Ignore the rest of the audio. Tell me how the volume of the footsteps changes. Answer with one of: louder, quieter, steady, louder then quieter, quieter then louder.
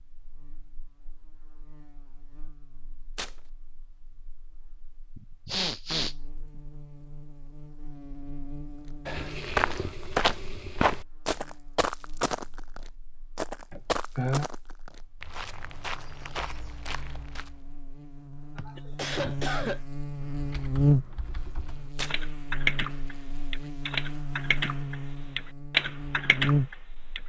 quieter.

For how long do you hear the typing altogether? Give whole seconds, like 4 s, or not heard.
7 s.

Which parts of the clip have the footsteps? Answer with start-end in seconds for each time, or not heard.
9.1-17.7.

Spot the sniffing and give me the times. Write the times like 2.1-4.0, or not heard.
5.2-6.2, 13.7-14.4, 18.6-19.8.